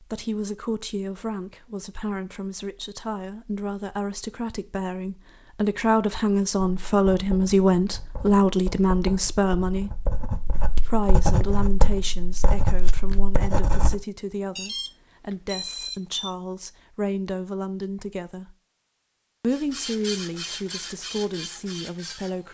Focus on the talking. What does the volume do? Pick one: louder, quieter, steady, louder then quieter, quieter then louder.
louder then quieter.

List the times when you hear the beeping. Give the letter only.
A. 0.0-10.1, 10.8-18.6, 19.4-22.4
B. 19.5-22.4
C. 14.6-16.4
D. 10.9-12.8
C.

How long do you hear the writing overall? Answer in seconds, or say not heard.
7 s.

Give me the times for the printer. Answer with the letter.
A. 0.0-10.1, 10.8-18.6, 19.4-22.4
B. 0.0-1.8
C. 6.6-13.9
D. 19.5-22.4
D.